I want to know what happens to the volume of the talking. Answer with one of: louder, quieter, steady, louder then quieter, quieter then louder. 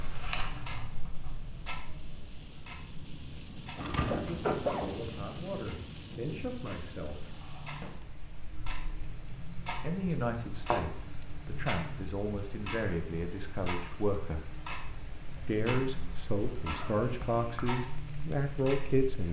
louder.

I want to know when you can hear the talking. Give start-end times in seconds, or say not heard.
4.2-7.3, 9.8-14.4, 15.4-19.2.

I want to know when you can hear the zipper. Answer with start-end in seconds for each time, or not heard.
3.3-5.0, 16.6-17.7.